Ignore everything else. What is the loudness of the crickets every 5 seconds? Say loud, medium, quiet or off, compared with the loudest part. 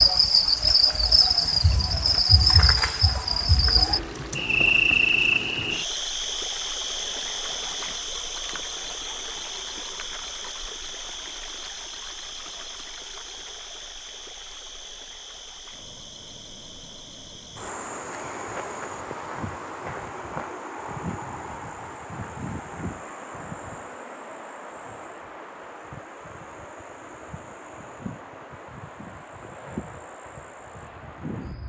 loud, medium, quiet, quiet, quiet, quiet, quiet.